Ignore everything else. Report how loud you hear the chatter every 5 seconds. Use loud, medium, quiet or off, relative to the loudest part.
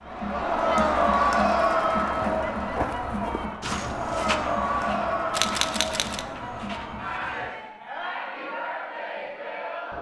loud, medium.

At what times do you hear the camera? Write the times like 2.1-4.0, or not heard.
5.3-6.2.